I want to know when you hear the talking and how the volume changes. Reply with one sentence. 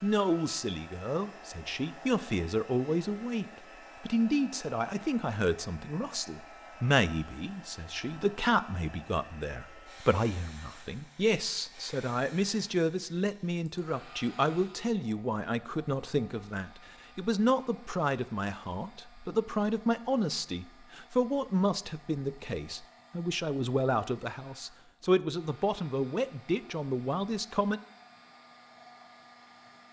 You can hear the talking from 0.0 to 27.8 s, at a steady volume.